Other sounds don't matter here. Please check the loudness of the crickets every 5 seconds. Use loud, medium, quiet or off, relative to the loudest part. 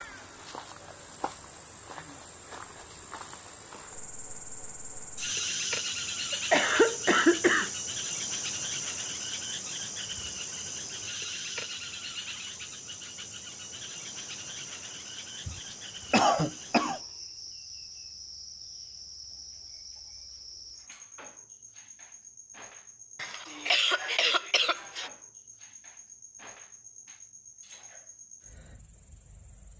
medium, loud, medium, medium, quiet, quiet.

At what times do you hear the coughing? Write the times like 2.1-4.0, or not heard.
6.3-7.7, 15.4-17.0, 23.1-25.1.